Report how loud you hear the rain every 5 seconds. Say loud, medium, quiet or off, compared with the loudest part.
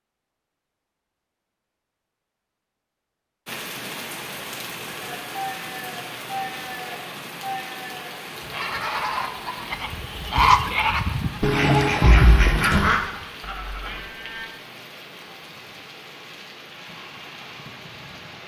loud, loud, medium, medium.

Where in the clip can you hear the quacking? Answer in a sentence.
You can hear the quacking from 11.4 to 13.0 s.